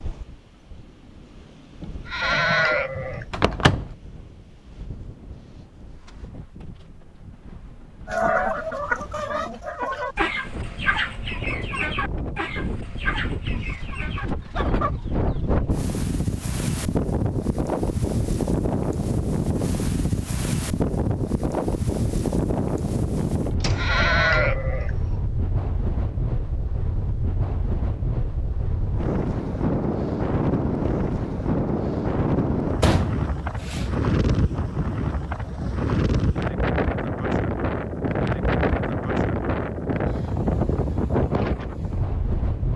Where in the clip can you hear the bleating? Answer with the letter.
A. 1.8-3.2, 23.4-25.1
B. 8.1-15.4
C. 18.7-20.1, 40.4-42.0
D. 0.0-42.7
A.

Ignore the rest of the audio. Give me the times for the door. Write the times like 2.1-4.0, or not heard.
3.3-4.0, 23.6-24.1, 32.8-33.9.